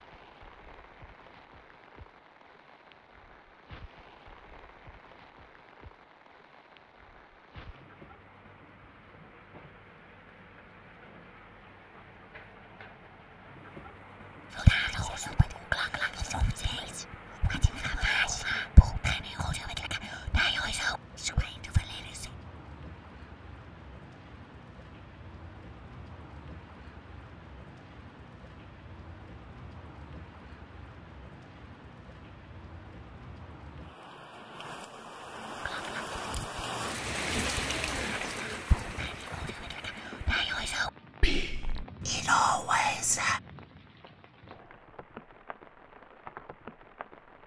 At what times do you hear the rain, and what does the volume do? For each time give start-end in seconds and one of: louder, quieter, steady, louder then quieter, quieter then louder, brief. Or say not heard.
0.0-47.4 louder.